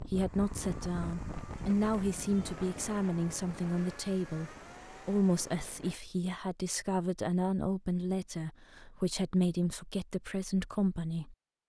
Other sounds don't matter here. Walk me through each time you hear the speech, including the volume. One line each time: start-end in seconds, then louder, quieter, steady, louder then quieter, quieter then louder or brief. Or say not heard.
0.0-11.3 steady.